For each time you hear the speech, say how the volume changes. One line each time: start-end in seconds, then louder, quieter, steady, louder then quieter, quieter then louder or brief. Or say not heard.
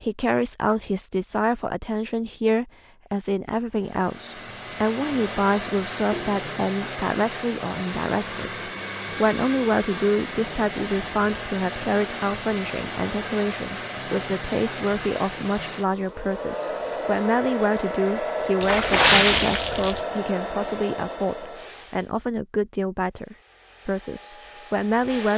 0.0-25.3 steady.